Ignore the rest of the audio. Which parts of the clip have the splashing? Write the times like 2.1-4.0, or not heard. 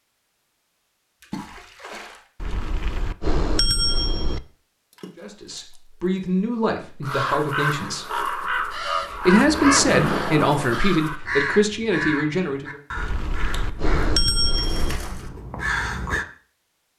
1.2-2.2, 4.9-5.8, 9.2-10.8, 13.5-15.3.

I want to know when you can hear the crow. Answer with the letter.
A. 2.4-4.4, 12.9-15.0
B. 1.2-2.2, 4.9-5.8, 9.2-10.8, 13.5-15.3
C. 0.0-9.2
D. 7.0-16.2
D.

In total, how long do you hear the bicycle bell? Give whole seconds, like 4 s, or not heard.
4 s.